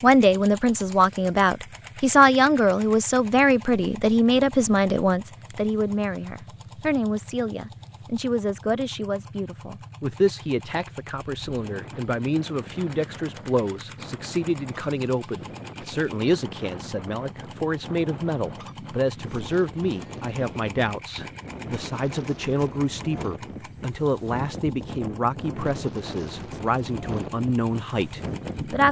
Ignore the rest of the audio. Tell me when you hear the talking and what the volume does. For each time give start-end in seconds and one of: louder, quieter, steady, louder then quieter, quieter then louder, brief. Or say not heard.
0.0-28.8 quieter.